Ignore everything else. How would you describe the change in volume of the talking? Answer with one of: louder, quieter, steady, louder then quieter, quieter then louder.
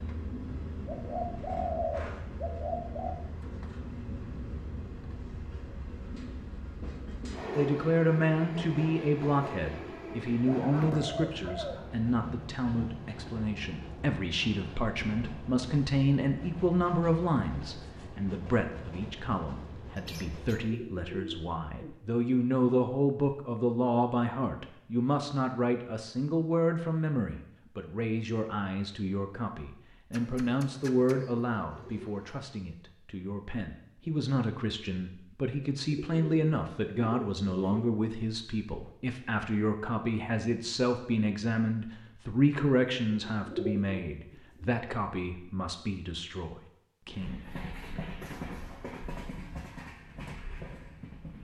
steady.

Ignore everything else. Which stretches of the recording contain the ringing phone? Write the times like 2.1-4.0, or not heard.
not heard.